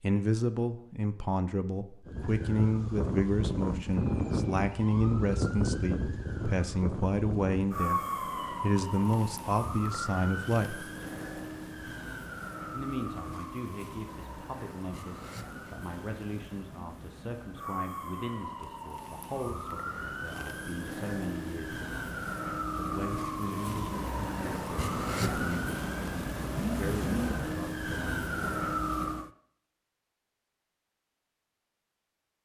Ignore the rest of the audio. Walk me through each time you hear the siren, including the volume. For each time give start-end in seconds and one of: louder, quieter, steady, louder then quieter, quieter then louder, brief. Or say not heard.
2.0-29.3 quieter then louder.